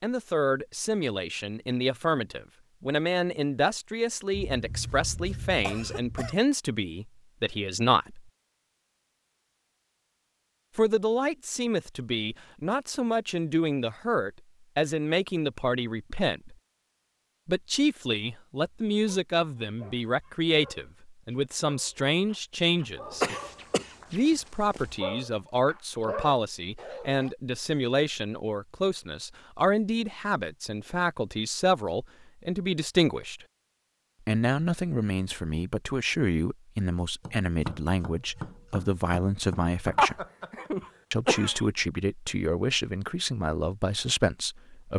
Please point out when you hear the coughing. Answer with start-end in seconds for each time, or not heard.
4.3-6.3, 23.1-24.9, 40.0-41.6.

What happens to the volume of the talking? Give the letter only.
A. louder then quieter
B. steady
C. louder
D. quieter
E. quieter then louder
B.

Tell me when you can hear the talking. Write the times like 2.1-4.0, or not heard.
0.0-8.2, 10.8-16.6, 17.4-23.2, 24.1-33.5, 34.2-40.2, 41.1-44.9.